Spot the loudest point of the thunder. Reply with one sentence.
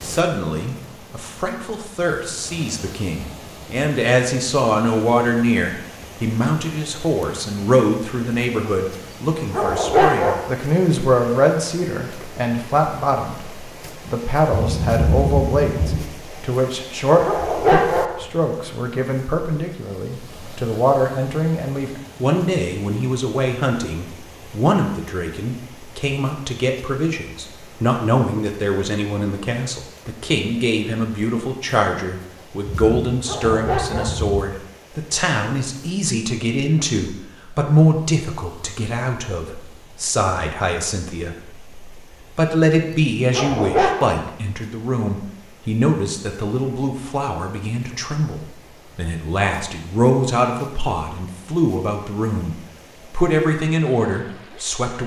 The volume of the thunder peaks at 15 seconds.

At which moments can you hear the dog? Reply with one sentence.
The dog can be heard from 9.5 to 10.3 s, from 17.2 to 18.1 s, from 33.2 to 34.1 s and from 43.3 to 44.0 s.